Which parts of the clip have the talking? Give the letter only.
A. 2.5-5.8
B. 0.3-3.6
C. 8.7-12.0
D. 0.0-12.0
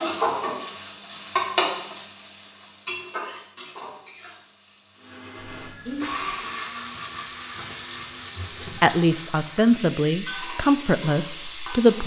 C.